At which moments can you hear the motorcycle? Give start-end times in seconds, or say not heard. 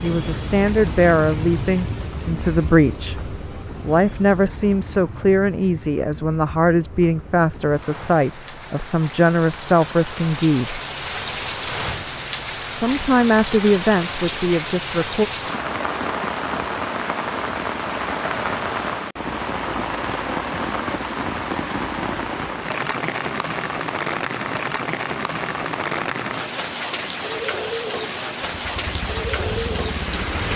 28.6-30.5.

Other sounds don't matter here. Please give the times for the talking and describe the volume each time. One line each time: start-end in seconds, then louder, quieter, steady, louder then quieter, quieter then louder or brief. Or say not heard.
0.0-10.8 steady
12.8-15.2 brief.